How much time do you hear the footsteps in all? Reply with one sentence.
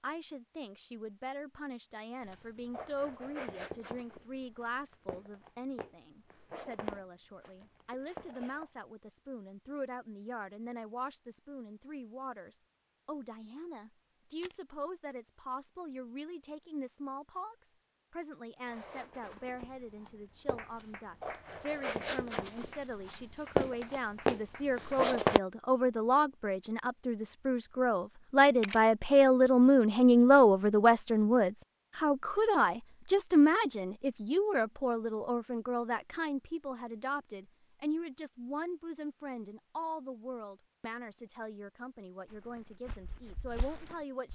You can hear the footsteps for 15 seconds altogether.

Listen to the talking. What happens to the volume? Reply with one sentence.
The loudness of the talking goes up, then down.